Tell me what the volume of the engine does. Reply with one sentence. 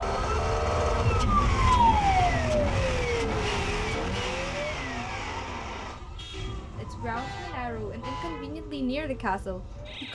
The loudness of the engine goes down.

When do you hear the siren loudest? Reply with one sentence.
The volume of the siren peaks at 2 seconds.